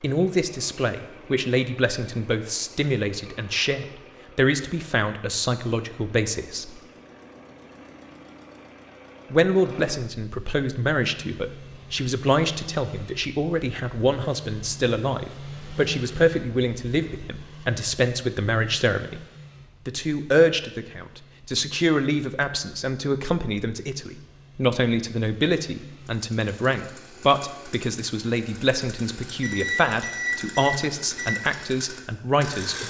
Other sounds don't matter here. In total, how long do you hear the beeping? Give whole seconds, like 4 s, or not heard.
2 s.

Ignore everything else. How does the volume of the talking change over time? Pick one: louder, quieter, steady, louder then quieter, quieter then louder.
steady.